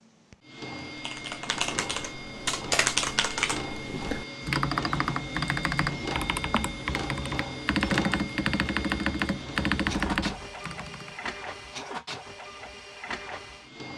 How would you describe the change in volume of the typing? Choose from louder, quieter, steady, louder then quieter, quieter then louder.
steady.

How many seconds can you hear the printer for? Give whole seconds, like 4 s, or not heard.
14 s.